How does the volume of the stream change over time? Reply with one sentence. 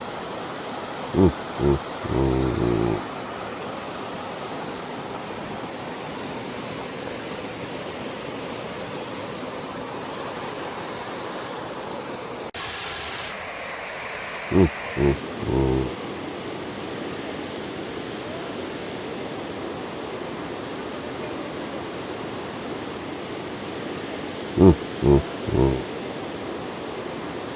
The loudness of the stream stays about the same.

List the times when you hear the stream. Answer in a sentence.
The stream can be heard from 0.0 to 27.5 s.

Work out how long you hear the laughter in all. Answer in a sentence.
The laughter can be heard for 5 seconds in total.